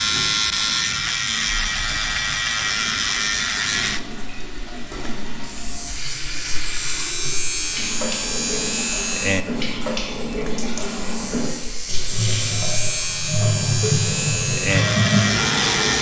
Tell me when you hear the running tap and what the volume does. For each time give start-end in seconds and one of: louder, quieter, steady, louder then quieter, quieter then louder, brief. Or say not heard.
0.0-15.9 louder.